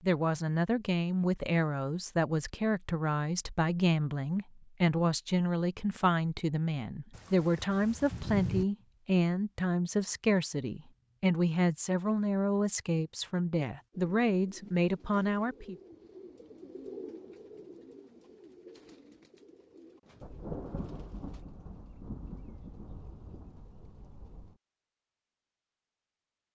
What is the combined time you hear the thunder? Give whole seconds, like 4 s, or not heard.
6 s.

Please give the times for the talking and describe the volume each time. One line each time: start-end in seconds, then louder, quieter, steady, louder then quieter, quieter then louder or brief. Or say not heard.
0.0-15.8 steady.